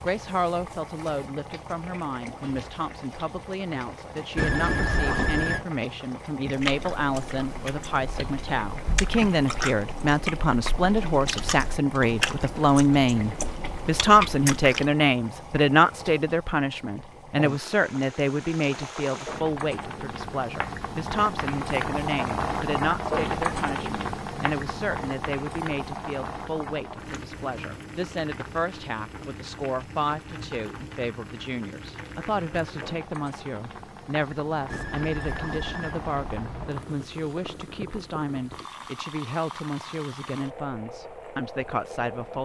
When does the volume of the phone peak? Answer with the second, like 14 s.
5 s.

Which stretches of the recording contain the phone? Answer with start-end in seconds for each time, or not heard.
4.3-5.7, 34.7-36.9.